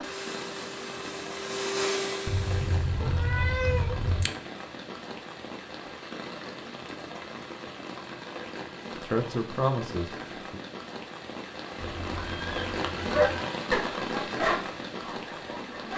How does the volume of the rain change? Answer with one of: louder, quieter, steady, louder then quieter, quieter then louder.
louder.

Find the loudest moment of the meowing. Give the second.
4 s.